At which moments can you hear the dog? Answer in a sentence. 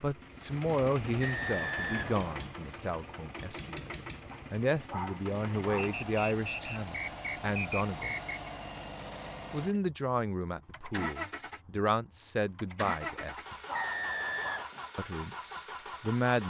You can hear the dog from 4.3 to 6.0 s and from 13.1 to 14.6 s.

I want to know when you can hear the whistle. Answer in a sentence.
The whistle can be heard from 1.2 to 2.5 s, from 5.8 to 8.5 s and from 13.7 to 14.7 s.